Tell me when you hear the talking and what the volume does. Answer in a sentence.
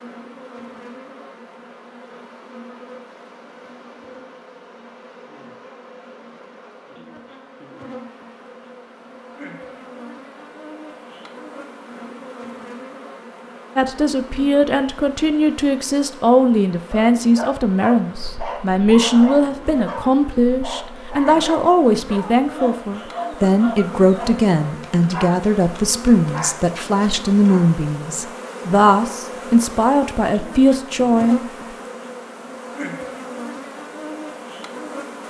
The talking can be heard from 13.8 to 31.4 s, at a steady volume.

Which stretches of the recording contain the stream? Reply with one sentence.
The stream can't be heard in this clip.